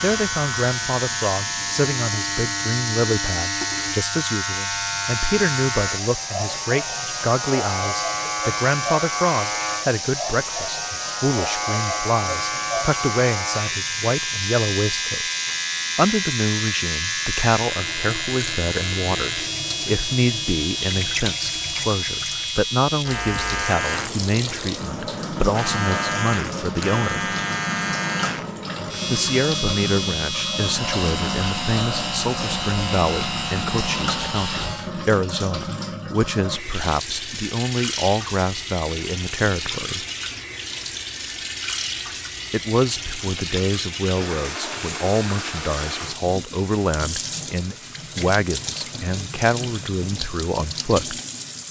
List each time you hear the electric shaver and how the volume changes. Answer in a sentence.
You can hear the electric shaver from 0.0 to 34.9 s, at a steady volume.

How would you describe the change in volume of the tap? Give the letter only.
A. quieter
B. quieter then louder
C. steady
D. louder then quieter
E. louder
C.